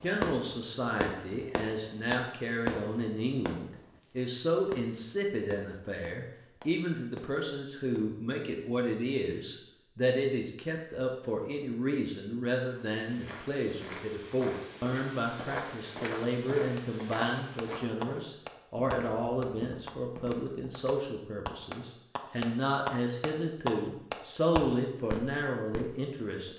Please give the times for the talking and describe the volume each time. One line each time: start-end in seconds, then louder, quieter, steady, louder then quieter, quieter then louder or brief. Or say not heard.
0.0-26.5 steady.